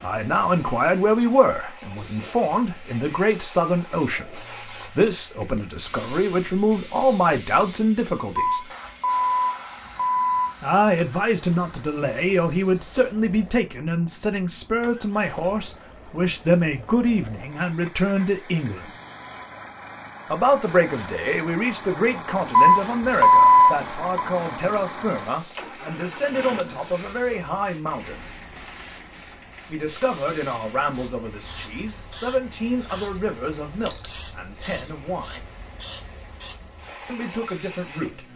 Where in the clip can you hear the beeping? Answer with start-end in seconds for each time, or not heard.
8.3-10.6, 22.5-24.2.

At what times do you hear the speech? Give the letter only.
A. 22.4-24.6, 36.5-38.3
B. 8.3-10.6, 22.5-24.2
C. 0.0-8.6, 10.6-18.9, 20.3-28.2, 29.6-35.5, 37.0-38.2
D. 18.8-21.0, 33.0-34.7
C.